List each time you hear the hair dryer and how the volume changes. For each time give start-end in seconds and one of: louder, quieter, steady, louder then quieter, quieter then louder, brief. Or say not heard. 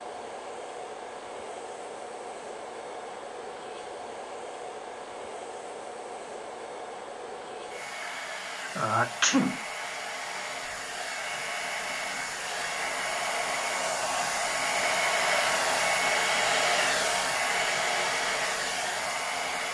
0.0-19.7 louder.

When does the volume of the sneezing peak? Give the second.
9 s.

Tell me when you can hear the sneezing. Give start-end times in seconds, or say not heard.
8.0-9.6.